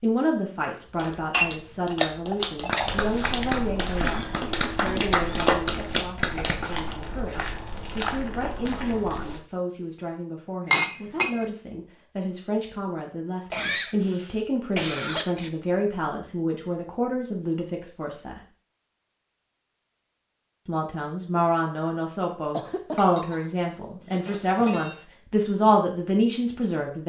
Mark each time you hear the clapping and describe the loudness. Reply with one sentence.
You can hear the clapping from 0.8 to 7.0 s, getting louder.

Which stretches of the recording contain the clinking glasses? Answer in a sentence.
You can hear the clinking glasses from 1.3 to 2.9 s, from 10.7 to 11.4 s and from 22.9 to 24.9 s.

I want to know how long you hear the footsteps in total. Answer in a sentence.
You can hear the footsteps for 7 seconds altogether.